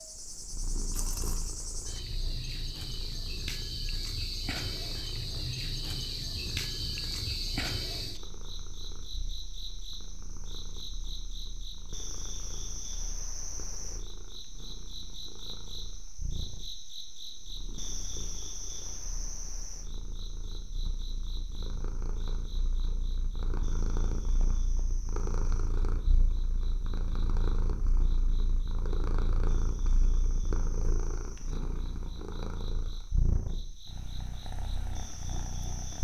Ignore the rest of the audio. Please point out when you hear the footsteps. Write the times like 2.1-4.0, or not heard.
not heard.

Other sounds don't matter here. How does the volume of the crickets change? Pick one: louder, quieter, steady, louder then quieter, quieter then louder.
quieter.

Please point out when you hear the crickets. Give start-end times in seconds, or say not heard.
0.0-35.9.